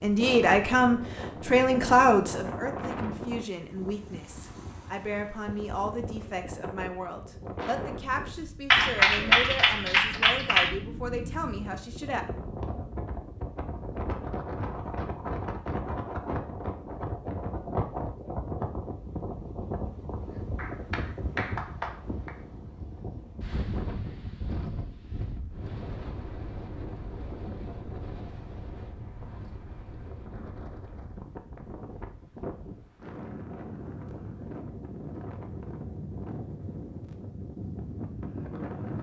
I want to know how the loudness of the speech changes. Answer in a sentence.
The loudness of the speech goes down.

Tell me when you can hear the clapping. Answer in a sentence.
The clapping can be heard from 8.7 to 10.7 s and from 20.6 to 22.4 s.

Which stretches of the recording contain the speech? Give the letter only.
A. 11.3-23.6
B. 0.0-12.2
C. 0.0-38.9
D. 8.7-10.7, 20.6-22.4
B.